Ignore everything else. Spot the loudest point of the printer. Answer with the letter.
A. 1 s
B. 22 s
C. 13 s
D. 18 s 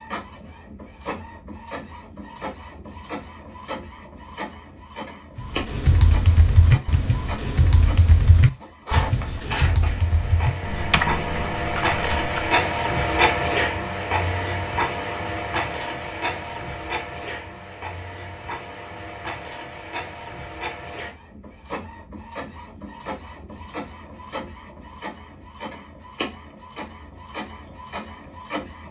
C.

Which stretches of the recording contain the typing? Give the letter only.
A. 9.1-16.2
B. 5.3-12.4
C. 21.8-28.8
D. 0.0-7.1
B.